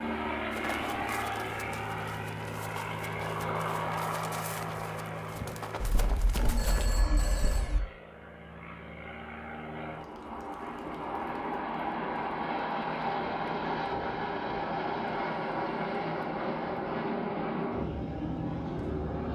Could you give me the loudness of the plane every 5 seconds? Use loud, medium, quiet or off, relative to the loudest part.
loud, medium, loud, loud.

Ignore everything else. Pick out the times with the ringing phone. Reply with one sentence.
You can hear the ringing phone from 5.8 to 7.8 s.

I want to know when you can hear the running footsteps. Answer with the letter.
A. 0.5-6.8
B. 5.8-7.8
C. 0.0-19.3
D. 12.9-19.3
A.